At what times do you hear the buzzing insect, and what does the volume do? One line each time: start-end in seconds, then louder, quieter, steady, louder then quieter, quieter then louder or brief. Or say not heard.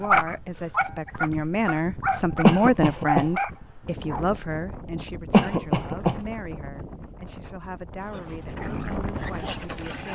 not heard.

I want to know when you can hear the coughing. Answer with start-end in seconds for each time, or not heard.
2.4-3.3, 5.3-6.2.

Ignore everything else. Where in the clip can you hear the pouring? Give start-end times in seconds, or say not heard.
not heard.